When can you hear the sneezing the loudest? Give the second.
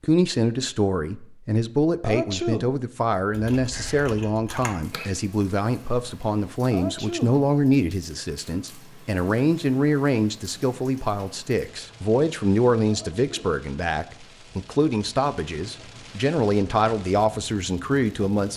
2 s.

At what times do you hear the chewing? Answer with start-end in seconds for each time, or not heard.
not heard.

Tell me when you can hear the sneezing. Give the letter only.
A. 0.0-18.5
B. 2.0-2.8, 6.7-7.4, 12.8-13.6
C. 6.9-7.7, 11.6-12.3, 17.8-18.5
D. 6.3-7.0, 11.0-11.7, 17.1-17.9
B.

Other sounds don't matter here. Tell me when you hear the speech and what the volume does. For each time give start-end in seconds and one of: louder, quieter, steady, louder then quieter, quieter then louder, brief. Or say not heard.
0.0-18.5 steady.